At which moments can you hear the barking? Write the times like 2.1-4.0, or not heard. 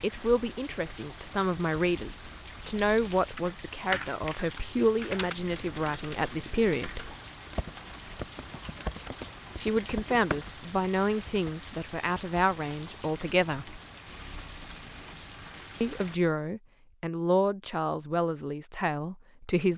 not heard.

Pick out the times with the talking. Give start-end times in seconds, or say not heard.
0.0-7.0, 9.6-13.8, 15.8-19.7.